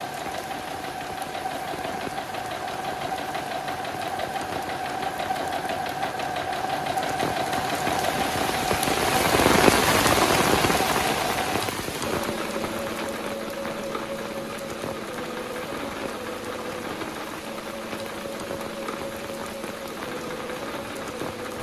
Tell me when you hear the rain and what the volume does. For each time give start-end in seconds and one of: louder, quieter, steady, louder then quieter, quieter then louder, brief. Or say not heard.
0.0-21.5 louder then quieter.